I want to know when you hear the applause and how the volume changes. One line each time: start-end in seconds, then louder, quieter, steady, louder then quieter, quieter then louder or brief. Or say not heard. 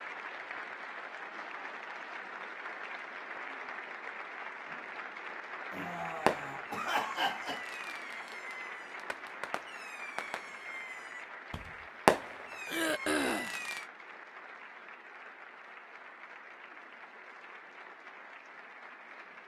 0.0-19.4 quieter.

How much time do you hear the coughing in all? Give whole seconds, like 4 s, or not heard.
3 s.